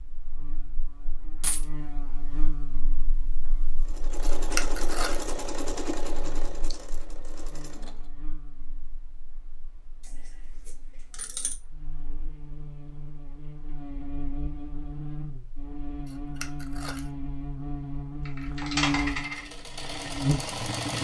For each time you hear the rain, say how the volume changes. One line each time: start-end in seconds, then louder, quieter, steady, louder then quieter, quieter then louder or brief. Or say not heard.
not heard.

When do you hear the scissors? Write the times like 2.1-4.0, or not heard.
4.2-5.2, 16.1-17.1.